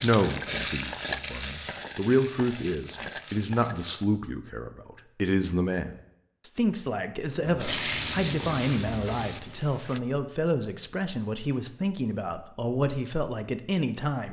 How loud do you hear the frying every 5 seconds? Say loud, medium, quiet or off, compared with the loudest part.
loud, loud, off.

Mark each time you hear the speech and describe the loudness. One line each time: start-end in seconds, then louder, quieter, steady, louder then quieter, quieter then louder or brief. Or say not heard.
0.0-14.2 steady.